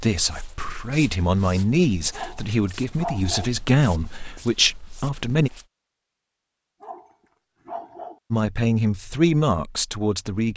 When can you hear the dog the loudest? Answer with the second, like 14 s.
3 s.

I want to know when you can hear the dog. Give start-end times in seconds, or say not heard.
2.1-3.5, 6.8-8.2.